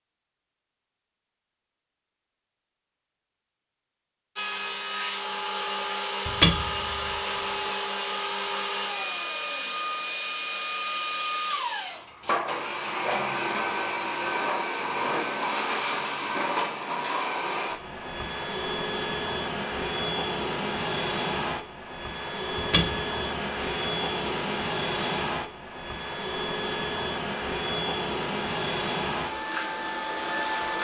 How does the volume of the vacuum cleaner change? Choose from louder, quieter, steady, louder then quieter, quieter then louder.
steady.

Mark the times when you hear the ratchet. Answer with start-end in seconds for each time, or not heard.
6.2-7.8, 22.6-25.3.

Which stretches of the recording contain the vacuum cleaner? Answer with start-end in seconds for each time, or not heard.
4.3-30.7.